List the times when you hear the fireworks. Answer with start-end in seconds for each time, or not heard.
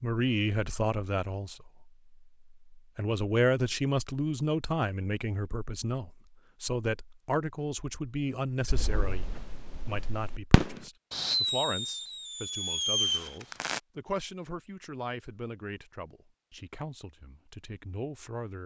8.7-13.8.